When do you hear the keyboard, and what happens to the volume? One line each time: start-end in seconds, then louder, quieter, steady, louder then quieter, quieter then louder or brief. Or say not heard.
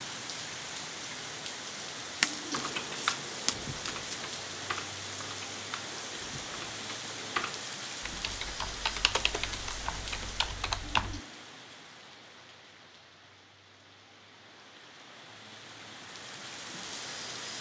2.5-11.2 quieter then louder.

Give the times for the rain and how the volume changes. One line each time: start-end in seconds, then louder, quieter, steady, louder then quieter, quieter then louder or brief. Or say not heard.
0.0-17.5 quieter.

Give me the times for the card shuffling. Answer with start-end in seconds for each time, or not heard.
2.2-4.2.